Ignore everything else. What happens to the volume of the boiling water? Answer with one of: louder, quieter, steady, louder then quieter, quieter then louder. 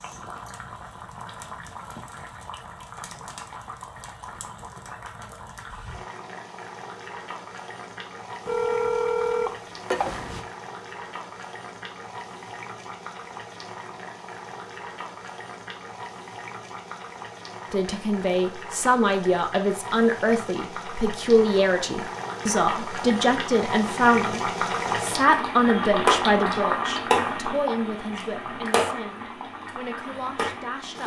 louder.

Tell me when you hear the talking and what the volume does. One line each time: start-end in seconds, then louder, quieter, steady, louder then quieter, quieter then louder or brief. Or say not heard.
17.7-31.0 quieter.